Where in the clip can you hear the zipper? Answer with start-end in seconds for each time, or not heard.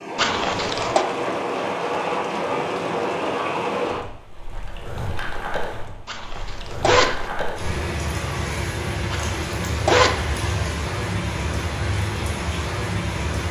0.1-1.1, 6.0-7.3, 9.1-10.2.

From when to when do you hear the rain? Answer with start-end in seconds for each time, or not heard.
0.0-13.4.